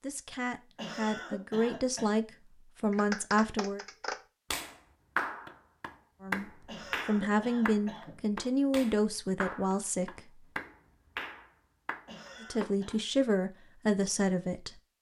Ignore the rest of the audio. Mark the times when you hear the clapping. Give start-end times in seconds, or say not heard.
2.9-12.9.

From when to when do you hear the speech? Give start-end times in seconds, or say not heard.
0.0-3.9, 6.2-10.4, 12.4-14.8.